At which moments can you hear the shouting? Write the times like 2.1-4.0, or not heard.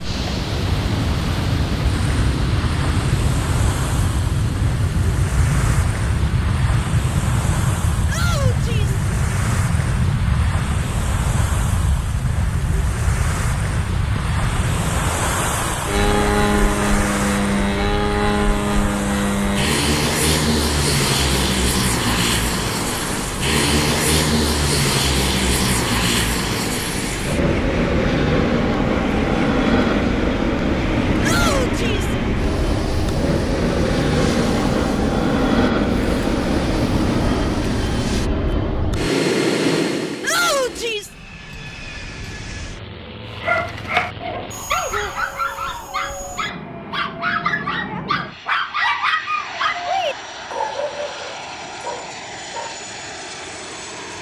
8.1-9.0, 31.2-32.1, 40.2-41.1.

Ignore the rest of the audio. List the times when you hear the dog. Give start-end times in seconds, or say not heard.
43.2-52.9.